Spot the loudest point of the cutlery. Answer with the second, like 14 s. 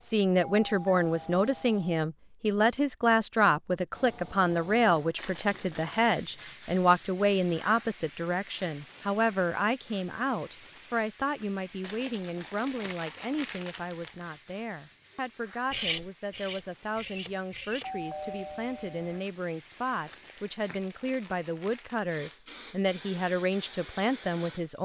16 s.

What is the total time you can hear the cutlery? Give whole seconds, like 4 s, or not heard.
2 s.